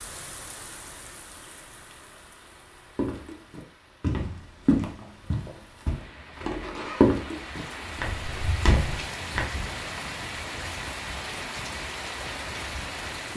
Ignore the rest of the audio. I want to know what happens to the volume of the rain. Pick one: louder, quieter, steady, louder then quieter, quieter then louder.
quieter then louder.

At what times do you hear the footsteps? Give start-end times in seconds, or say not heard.
3.0-9.4.